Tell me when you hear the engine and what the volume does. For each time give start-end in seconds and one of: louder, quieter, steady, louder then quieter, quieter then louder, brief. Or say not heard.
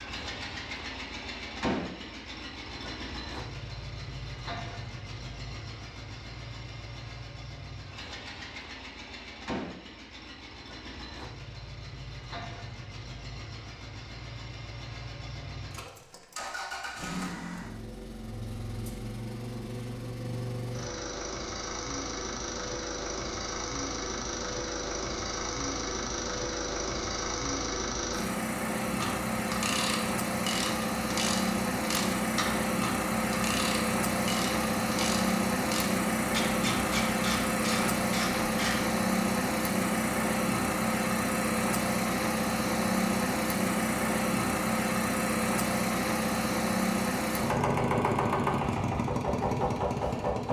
0.0-50.4 louder.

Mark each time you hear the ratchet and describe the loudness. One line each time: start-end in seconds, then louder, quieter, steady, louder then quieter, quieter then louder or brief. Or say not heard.
28.8-38.9 steady.